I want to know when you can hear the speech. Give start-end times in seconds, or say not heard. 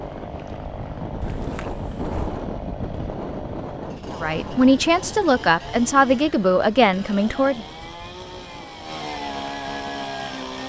4.2-7.7.